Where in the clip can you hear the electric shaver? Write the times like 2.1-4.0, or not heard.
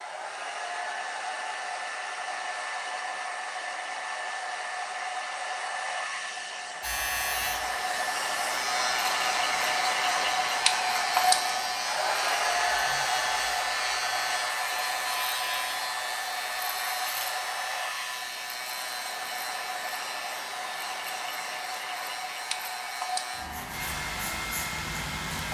6.8-25.5.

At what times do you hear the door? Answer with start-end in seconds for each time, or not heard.
not heard.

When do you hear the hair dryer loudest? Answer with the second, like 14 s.
11 s.